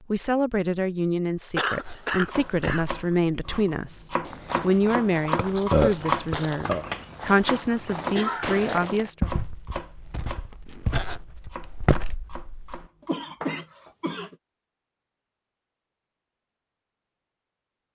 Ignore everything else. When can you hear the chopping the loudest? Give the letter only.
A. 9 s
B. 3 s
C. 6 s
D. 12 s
C.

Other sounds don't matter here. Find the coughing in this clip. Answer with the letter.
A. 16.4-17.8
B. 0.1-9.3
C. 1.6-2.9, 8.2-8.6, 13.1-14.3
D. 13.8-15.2
C.